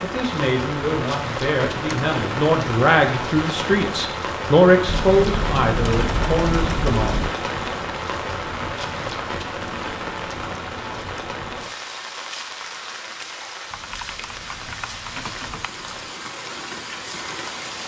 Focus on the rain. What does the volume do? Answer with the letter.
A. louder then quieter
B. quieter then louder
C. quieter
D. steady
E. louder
C.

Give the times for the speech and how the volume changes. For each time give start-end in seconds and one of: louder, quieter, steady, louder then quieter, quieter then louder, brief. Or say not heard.
0.0-7.1 louder then quieter.